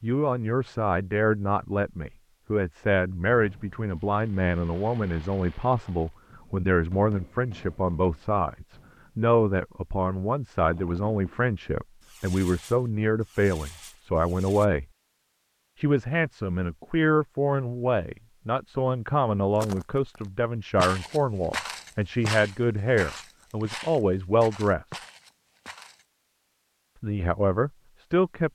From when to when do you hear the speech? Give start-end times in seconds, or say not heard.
0.0-14.8, 15.8-25.0, 27.0-28.5.